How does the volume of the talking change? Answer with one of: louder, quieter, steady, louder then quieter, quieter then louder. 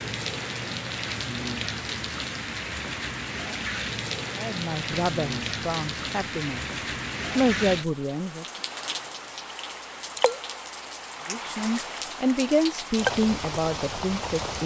louder then quieter.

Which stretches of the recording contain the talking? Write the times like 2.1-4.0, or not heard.
4.3-8.4, 11.2-14.6.